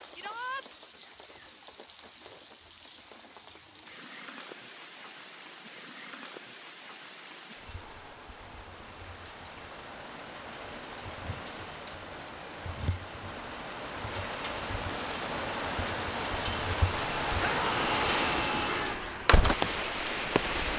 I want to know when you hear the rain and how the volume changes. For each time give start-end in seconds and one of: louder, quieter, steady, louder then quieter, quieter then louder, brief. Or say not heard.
0.0-20.7 louder.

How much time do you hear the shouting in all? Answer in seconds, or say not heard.
2 s.